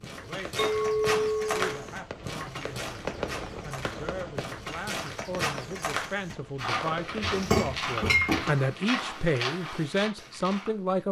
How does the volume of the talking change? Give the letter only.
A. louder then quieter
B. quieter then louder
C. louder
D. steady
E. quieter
C.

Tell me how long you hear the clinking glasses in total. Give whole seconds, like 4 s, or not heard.
2 s.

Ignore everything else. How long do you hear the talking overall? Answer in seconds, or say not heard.
11 s.